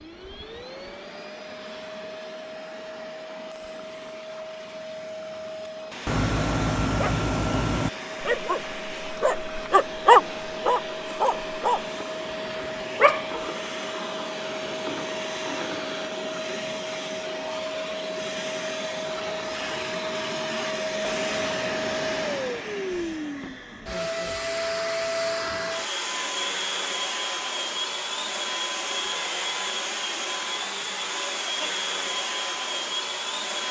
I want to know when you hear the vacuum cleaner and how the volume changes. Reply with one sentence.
You can hear the vacuum cleaner from 0.0 to 33.6 s, getting louder.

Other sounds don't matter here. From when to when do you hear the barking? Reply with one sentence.
You can hear the barking from 6.0 to 11.8 s and from 12.6 to 13.2 s.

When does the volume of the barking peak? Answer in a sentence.
The volume of the barking peaks at 10 seconds.